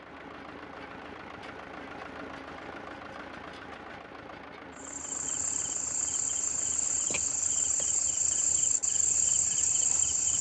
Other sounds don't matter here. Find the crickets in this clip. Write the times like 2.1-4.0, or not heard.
4.8-10.3.